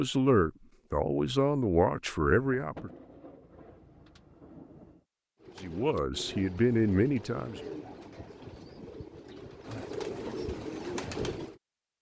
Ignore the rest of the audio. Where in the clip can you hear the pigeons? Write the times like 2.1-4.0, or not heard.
5.4-11.6.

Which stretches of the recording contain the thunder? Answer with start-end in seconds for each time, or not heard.
2.5-5.0.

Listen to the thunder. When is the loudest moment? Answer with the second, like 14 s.
3 s.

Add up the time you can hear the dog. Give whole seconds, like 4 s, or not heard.
not heard.